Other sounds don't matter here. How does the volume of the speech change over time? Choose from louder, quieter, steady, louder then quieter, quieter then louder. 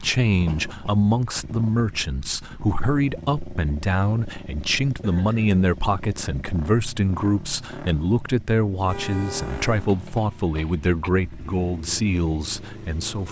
steady.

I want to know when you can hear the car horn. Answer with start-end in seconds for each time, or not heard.
8.8-9.8.